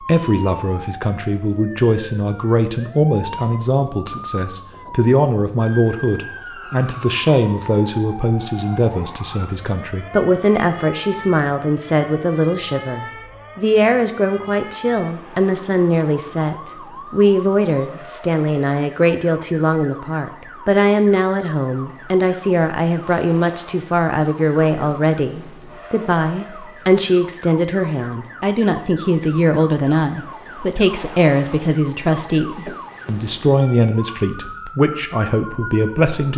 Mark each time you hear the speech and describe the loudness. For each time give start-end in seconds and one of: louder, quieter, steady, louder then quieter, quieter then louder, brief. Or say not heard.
0.0-36.3 steady.